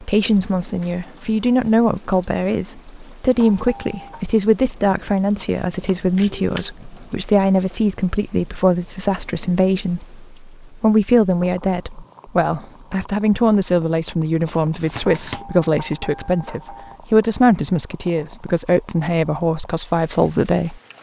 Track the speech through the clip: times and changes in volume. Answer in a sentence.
The speech can be heard from 0.0 to 20.9 s, at a steady volume.